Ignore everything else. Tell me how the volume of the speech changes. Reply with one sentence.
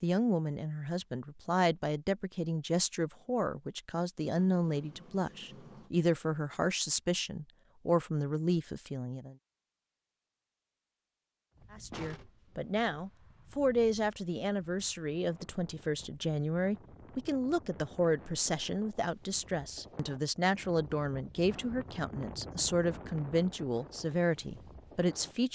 The loudness of the speech stays about the same.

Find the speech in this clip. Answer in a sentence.
You can hear the speech from 0.0 to 9.3 s and from 11.7 to 25.5 s.